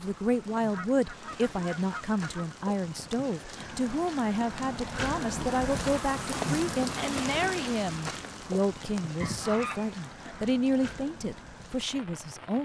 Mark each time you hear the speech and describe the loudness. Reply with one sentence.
You can hear the speech from 0.0 to 12.6 s, at a steady volume.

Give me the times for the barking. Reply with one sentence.
The barking can't be heard in this clip.